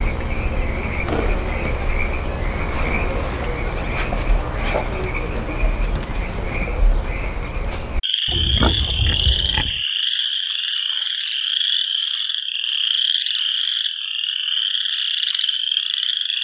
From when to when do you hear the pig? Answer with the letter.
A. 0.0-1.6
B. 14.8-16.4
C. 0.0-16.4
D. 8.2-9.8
D.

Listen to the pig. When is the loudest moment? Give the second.
9 s.